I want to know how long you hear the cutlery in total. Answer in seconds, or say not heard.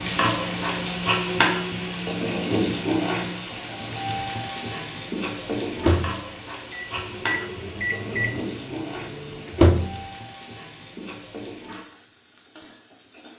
not heard.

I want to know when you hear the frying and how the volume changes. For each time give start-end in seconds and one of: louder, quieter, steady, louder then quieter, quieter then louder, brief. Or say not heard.
0.0-13.3 quieter.